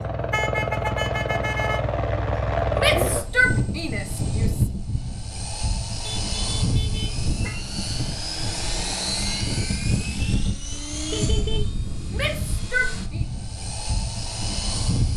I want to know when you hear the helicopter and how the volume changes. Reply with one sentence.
You can hear the helicopter from 0.0 to 15.1 s, getting quieter.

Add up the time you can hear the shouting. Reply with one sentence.
You can hear the shouting for 3 seconds altogether.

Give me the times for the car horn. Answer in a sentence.
You can hear the car horn from 0.3 to 1.8 s, from 6.0 to 7.5 s and from 11.1 to 11.7 s.